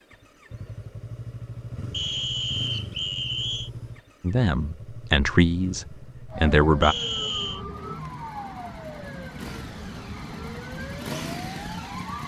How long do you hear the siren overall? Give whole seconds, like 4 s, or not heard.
6 s.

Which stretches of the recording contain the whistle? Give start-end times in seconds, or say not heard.
1.9-3.7, 6.8-7.6.